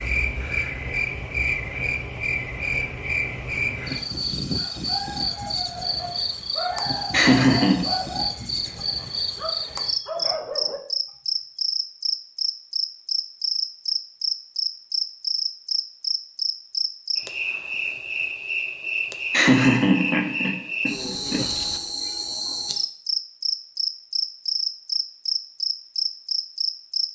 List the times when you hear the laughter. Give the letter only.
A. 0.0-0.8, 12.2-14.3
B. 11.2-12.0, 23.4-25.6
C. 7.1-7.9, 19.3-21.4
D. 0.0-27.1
C.